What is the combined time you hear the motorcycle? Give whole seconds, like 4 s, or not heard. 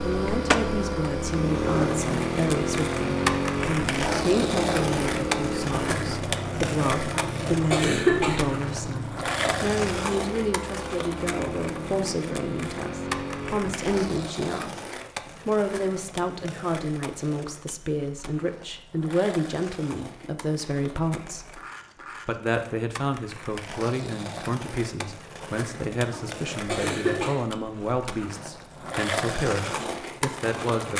14 s.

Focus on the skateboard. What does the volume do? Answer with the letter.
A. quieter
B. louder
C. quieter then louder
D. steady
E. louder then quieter
C.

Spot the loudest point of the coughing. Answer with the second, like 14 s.
8 s.